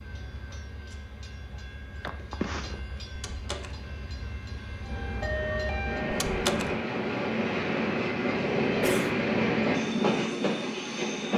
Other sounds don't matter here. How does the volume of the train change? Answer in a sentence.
The volume of the train goes up.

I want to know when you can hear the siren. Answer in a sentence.
You can hear the siren from 4.8 to 6.8 s.